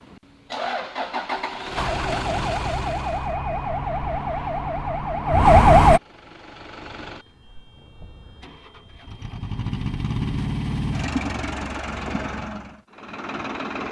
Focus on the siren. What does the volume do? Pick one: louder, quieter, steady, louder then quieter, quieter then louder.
louder.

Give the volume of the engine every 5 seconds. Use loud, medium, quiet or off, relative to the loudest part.
loud, medium, loud.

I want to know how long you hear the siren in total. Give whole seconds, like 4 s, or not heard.
4 s.